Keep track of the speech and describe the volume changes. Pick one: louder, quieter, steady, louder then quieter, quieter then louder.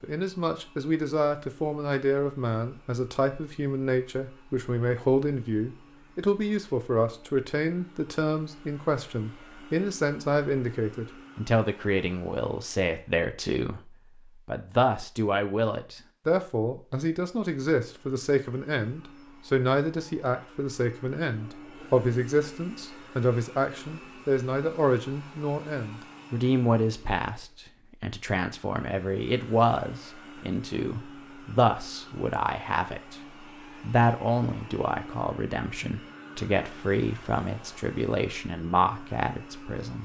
steady.